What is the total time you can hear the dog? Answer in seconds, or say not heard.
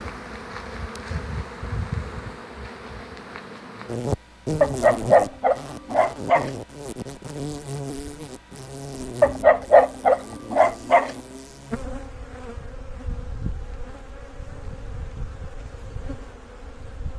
4 s.